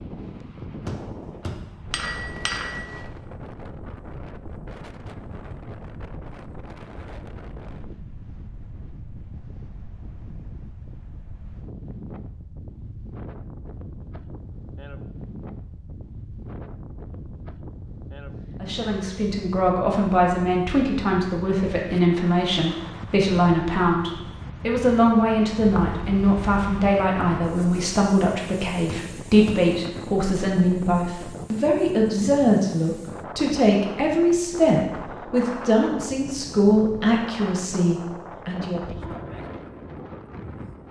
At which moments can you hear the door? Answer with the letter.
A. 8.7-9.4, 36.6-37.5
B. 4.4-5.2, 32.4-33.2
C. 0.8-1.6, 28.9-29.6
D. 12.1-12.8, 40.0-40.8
C.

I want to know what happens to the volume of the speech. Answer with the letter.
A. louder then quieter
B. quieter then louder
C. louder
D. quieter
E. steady
E.